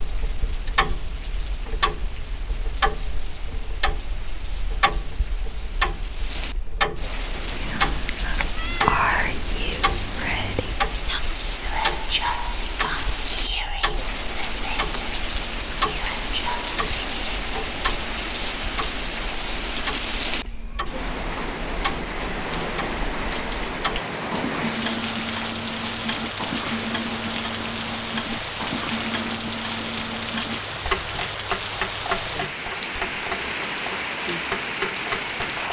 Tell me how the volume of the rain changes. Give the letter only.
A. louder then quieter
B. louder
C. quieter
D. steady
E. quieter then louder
B.